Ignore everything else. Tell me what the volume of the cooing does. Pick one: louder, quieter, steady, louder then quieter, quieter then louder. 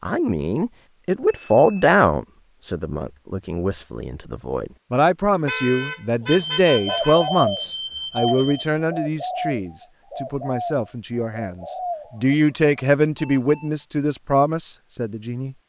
quieter.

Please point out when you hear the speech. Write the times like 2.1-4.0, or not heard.
0.0-15.6.